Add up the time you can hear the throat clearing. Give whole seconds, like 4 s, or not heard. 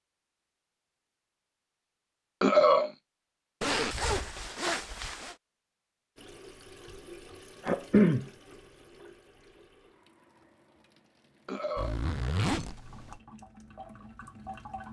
2 s.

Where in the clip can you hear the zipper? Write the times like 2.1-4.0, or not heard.
3.6-5.3, 11.8-13.2.